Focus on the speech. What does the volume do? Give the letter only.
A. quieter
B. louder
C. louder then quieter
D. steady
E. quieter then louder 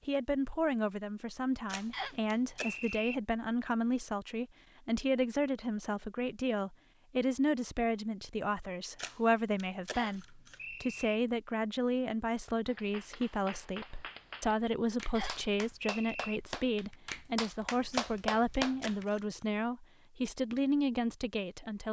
D.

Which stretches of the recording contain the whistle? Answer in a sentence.
The whistle can be heard from 1.9 to 3.1 s, from 9.9 to 11.2 s and from 15.2 to 16.4 s.